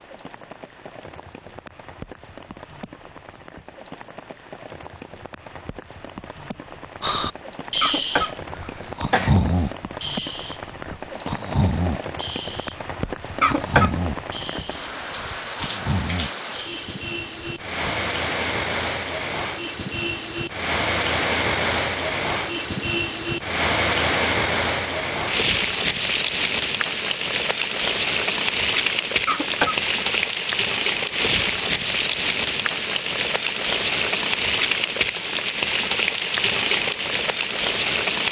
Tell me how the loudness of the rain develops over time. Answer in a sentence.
The loudness of the rain goes up.